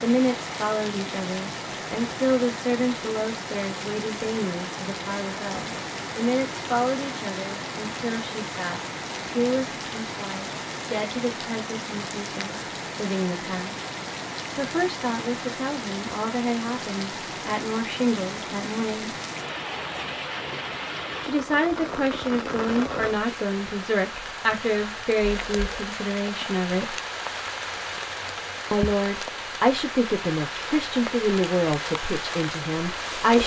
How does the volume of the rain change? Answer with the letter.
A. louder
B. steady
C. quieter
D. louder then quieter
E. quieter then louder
B.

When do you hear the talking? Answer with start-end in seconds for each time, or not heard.
0.0-13.8, 14.6-19.1, 21.2-26.9, 28.7-33.4.